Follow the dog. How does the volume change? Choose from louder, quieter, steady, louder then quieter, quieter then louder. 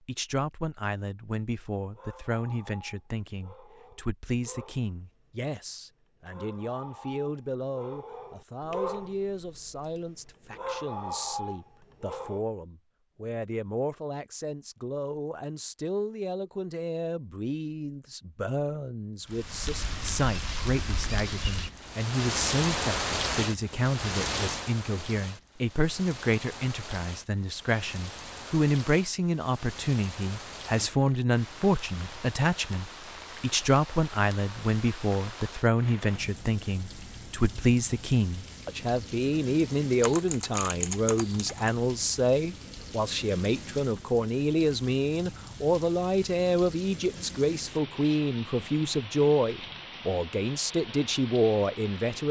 louder.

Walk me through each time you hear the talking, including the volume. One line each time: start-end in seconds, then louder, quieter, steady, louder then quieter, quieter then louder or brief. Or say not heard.
0.1-52.2 louder.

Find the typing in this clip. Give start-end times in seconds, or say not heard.
40.0-41.8.